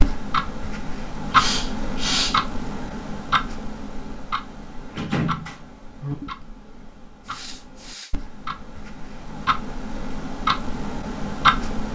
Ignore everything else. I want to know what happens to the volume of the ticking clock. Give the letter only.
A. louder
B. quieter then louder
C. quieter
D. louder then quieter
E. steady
B.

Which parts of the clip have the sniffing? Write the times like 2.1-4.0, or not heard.
1.3-2.5, 7.2-8.2.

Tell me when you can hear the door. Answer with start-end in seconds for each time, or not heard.
4.8-6.2.